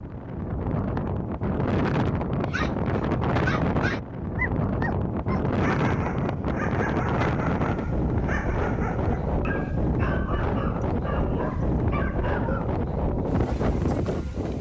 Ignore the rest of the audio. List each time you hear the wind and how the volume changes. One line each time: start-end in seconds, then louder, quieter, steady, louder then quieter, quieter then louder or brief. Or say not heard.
0.0-14.5 steady.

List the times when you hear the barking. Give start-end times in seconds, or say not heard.
2.5-12.7.